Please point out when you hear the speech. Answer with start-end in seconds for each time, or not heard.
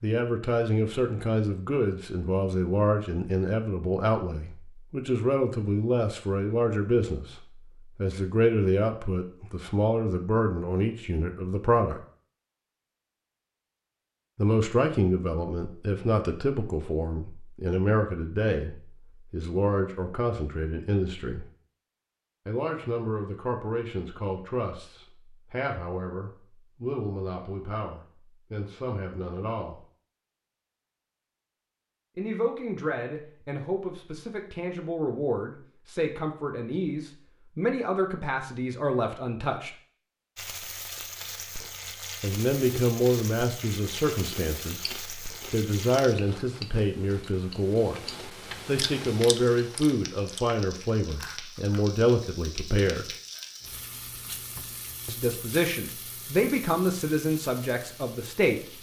0.0-12.0, 14.3-21.4, 22.4-29.9, 32.1-39.8, 42.2-53.0, 55.0-58.6.